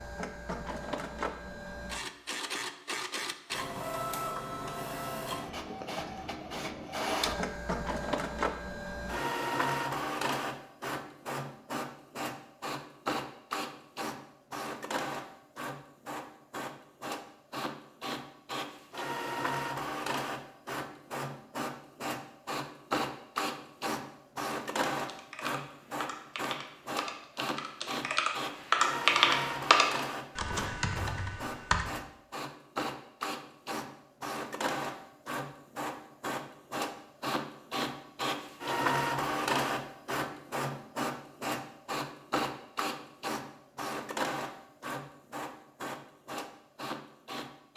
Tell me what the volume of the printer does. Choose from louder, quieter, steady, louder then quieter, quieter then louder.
steady.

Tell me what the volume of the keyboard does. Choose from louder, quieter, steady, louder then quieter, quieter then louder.
louder then quieter.